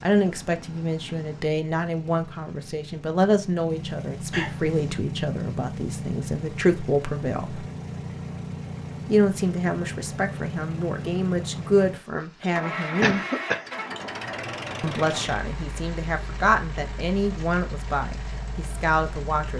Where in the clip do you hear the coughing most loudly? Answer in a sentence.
The volume of the coughing peaks at 13 seconds.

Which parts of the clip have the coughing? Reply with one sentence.
The coughing can be heard from 4.3 to 5.0 s and from 13.0 to 13.8 s.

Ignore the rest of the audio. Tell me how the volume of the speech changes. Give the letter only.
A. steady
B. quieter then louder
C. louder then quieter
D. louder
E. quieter
A.